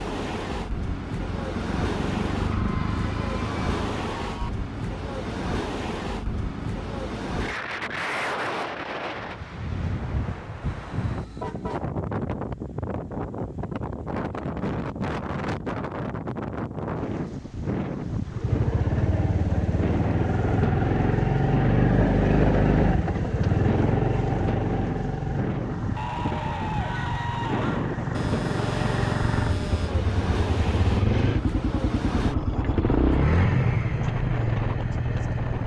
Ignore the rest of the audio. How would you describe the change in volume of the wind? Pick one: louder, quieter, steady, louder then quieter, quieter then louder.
steady.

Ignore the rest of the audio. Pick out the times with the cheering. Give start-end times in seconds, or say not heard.
2.5-4.5, 25.9-27.9.